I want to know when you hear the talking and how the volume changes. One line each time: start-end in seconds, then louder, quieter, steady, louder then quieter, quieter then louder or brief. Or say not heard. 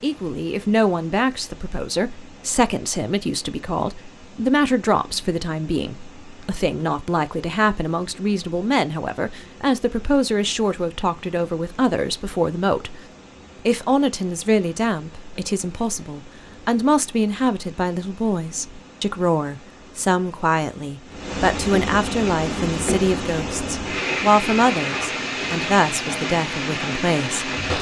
0.0-13.0 steady
13.7-27.7 steady.